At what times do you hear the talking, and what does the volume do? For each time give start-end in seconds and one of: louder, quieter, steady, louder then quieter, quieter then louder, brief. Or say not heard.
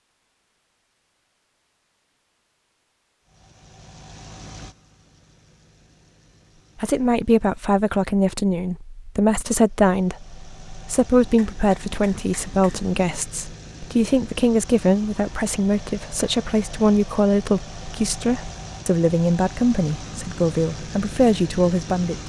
6.8-22.2 steady.